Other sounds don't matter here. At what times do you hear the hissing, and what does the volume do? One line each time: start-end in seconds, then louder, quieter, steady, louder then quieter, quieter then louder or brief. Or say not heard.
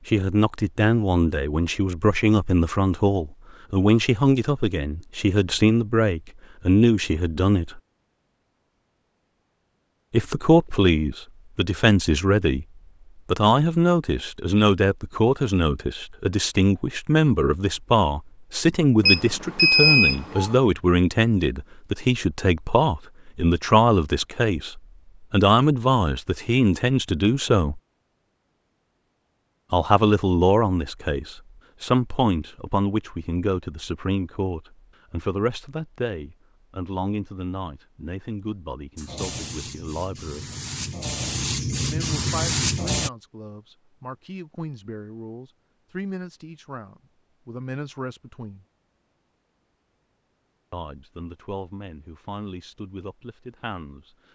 39.0-43.1 louder.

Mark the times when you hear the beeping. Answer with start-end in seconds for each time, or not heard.
19.1-20.6.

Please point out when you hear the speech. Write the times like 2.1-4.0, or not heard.
0.1-7.8, 10.1-12.7, 13.2-27.8, 29.7-40.5, 41.8-48.6, 50.7-54.1.